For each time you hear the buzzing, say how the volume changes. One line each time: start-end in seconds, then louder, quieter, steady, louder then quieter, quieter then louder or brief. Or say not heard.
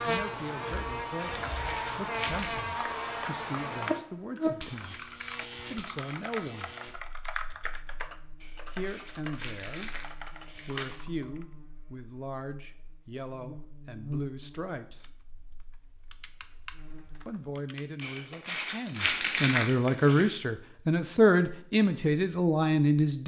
0.0-17.2 quieter then louder.